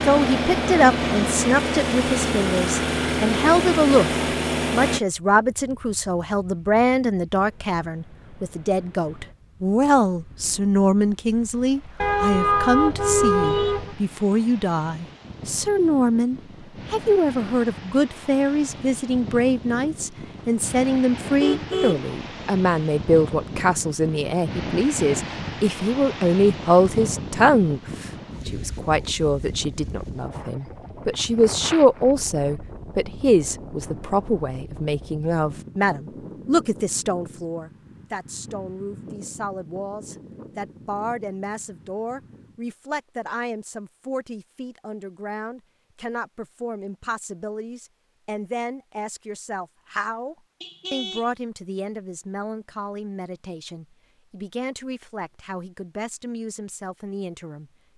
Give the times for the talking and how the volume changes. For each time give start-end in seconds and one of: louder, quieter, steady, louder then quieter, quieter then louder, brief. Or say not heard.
0.0-57.7 quieter.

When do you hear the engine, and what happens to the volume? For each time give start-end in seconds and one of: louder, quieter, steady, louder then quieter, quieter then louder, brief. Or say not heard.
0.0-5.0 steady.